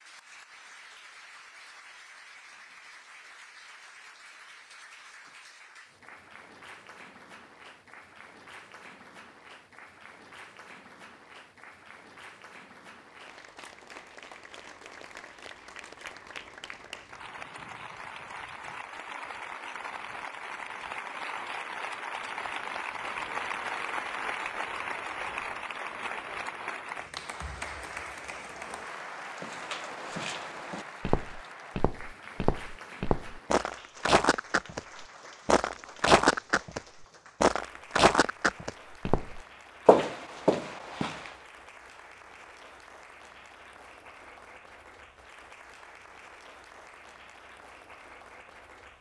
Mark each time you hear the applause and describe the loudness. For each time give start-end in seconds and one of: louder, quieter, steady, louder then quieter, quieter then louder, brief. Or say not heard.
0.0-48.9 louder then quieter.